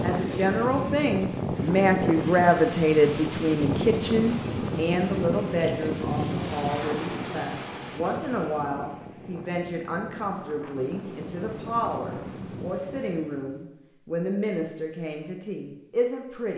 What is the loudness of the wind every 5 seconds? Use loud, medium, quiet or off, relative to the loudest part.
loud, loud, medium, off.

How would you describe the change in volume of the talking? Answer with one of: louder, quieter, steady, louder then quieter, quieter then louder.
quieter.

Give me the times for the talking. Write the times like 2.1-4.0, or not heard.
0.0-16.5.